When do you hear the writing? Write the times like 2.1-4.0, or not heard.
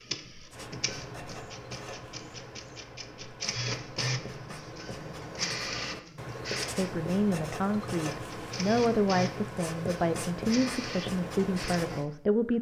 0.5-12.1.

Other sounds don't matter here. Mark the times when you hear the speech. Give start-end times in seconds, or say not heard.
6.8-12.5.